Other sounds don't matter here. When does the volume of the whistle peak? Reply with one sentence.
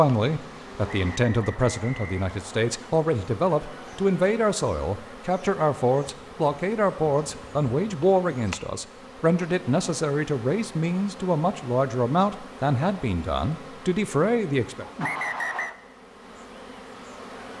The volume of the whistle peaks at 15 seconds.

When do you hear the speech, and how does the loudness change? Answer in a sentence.
You can hear the speech from 0.0 to 14.8 s, at a steady volume.